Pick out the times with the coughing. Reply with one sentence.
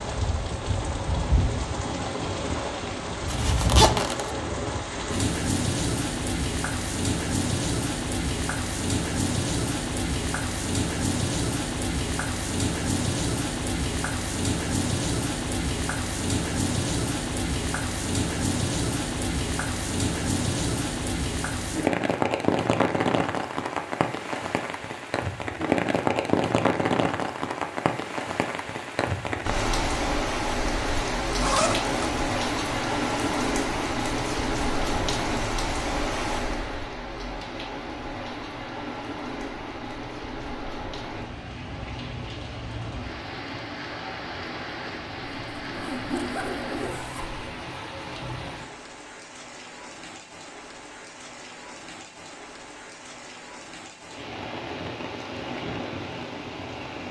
You can't hear the coughing here.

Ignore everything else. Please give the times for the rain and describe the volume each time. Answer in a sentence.
You can hear the rain from 0.0 to 57.0 s, getting quieter.